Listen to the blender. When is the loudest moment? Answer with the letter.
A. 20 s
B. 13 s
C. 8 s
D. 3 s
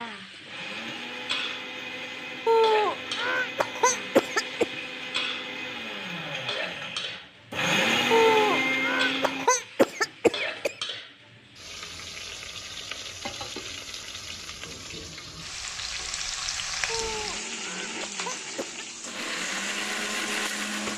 C.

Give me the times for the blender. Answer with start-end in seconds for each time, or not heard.
0.5-9.5, 16.9-20.9.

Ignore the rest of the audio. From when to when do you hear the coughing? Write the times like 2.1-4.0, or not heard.
2.5-4.7, 8.1-10.8, 16.9-18.9.